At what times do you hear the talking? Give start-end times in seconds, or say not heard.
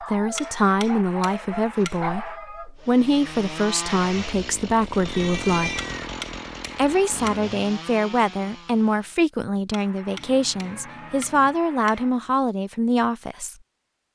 0.1-5.8, 6.8-13.6.